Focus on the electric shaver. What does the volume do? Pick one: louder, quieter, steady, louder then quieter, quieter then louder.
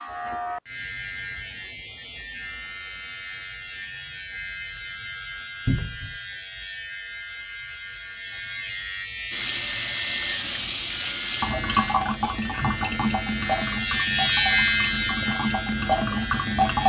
louder.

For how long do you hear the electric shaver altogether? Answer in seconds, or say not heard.
17 s.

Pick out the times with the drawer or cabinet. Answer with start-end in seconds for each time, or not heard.
5.7-6.2.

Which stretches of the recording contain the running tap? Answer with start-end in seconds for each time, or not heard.
9.3-16.8.